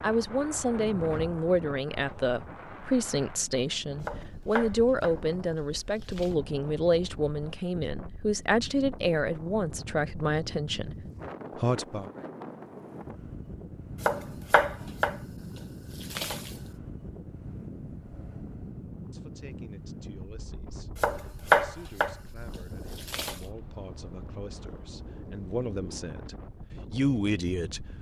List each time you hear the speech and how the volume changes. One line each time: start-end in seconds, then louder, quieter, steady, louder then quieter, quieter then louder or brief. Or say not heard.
0.0-10.9 steady
11.6-12.1 brief
18.9-27.9 louder.